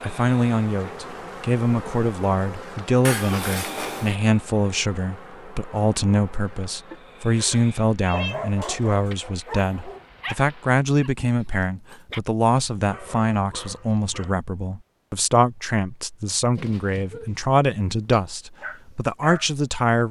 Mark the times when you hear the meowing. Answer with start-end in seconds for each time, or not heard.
3.0-4.2, 6.9-8.4, 16.6-17.4.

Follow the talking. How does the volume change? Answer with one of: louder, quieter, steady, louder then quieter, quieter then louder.
steady.